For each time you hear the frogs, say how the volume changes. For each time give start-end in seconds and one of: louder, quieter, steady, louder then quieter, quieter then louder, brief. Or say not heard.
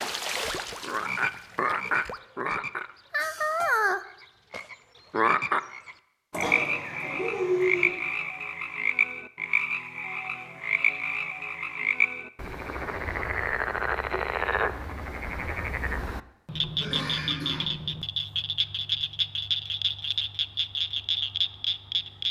0.0-22.2 steady.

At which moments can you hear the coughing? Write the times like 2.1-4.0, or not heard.
6.3-7.9, 16.8-17.7.